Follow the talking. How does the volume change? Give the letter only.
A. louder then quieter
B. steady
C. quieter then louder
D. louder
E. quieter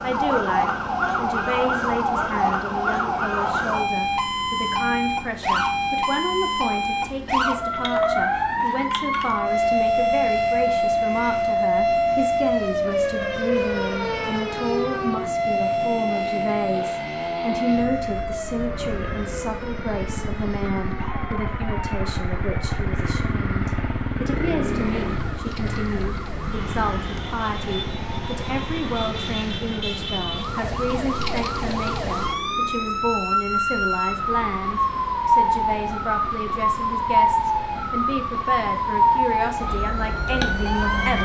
B.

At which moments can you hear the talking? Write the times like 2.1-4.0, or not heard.
0.0-41.2.